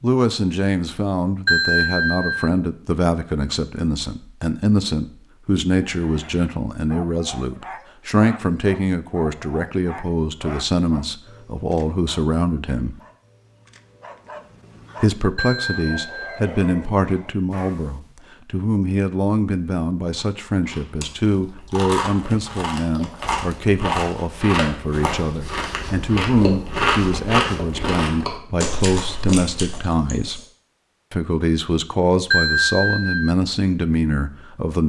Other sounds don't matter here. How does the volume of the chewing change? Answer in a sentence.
The loudness of the chewing goes up, then down.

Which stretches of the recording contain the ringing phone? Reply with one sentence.
You can hear the ringing phone from 1.4 to 2.5 s, from 15.3 to 16.4 s and from 32.3 to 33.4 s.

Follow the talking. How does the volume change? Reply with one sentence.
The loudness of the talking stays about the same.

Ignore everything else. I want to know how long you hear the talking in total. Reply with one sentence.
The talking can be heard for 32 seconds in total.